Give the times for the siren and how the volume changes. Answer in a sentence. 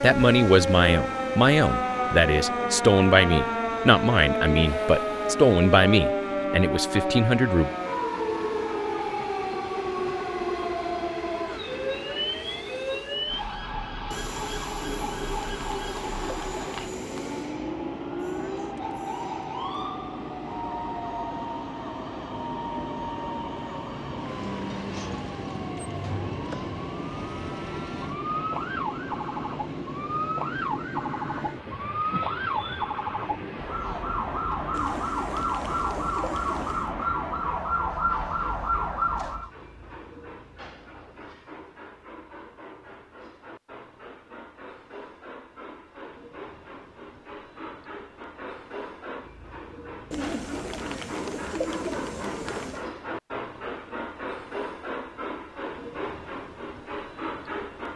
The siren can be heard from 0.0 to 39.5 s, getting quieter then louder.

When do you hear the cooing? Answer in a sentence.
The cooing can be heard from 14.8 to 17.4 s, from 34.7 to 37.0 s and from 50.1 to 52.9 s.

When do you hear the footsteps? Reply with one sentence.
You can't hear the footsteps here.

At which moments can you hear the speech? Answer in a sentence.
The speech can be heard from 0.0 to 7.7 s.